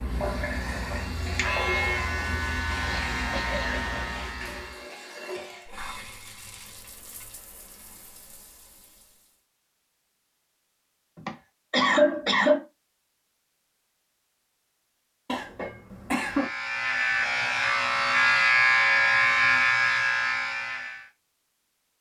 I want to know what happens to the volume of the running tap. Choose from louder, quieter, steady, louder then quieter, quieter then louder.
quieter.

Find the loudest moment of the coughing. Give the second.
12 s.